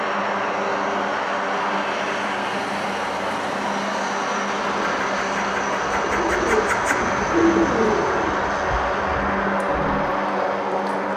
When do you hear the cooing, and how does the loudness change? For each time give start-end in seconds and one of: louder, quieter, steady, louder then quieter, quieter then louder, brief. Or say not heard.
4.5-10.2 louder then quieter.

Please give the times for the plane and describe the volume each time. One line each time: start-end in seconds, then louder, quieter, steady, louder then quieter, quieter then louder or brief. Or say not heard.
0.0-11.1 steady.